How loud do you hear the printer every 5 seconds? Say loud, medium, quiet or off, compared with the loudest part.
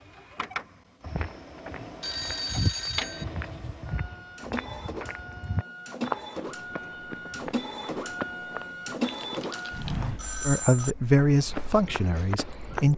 medium, loud, quiet.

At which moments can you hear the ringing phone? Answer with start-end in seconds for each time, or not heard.
1.8-3.2, 9.1-10.9.